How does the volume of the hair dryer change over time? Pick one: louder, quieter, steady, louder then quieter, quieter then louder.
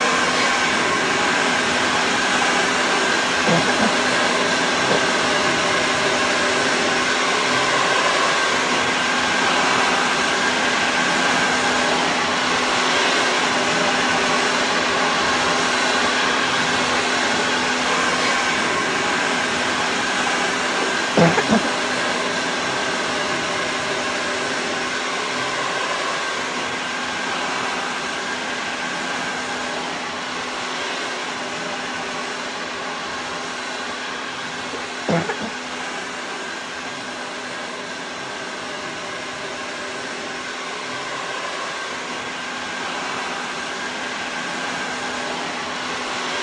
quieter.